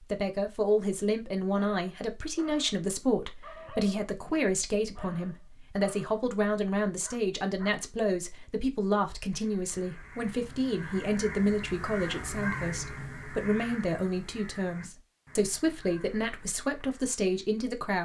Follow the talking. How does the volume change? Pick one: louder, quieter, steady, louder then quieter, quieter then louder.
steady.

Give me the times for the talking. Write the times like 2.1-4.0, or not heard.
0.0-17.9.